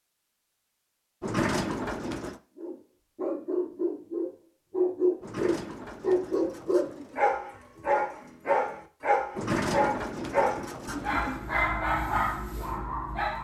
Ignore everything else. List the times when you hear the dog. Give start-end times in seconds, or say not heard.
2.5-13.3.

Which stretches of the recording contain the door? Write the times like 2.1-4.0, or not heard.
1.2-2.4, 5.2-7.2, 9.3-11.4.